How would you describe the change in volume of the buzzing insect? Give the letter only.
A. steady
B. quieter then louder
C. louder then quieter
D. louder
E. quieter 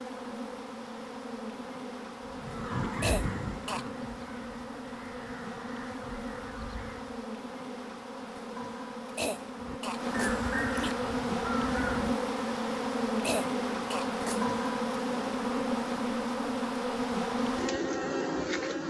D.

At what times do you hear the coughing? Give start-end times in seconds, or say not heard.
2.9-3.9, 9.1-10.9, 13.2-14.5.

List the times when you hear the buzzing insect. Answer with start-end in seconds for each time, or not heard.
0.0-18.8.